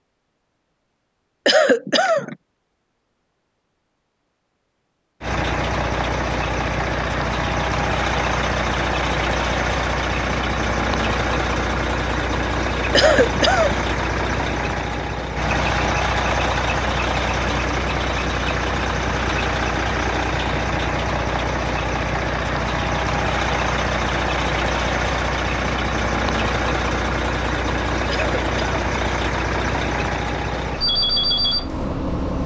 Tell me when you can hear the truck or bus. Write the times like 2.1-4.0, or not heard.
5.2-32.4.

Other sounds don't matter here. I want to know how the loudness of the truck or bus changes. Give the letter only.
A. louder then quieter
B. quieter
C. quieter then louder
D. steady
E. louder
D.